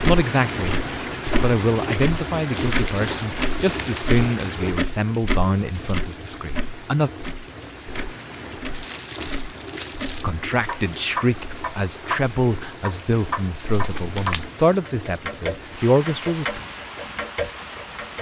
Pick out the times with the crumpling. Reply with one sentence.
The crumpling can be heard from 2.5 to 4.2 s, from 8.7 to 10.2 s and from 13.8 to 14.5 s.